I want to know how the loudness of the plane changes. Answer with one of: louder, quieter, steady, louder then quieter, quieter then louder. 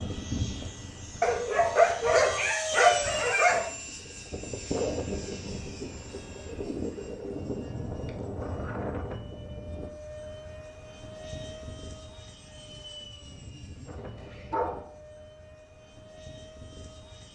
quieter.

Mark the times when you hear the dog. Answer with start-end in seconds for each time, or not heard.
1.2-3.7, 13.8-15.0.